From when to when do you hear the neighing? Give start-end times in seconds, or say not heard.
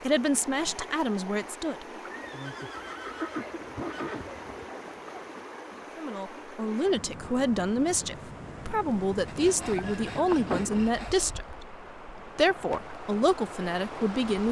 2.0-4.8, 9.5-10.9.